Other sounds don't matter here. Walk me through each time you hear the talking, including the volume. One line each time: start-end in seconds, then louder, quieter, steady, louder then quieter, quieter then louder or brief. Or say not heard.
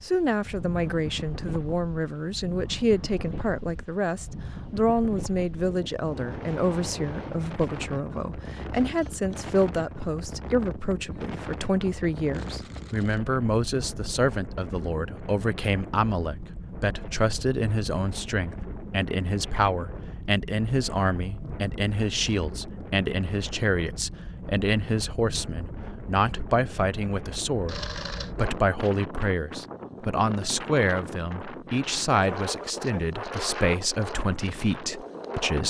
0.0-35.6 steady.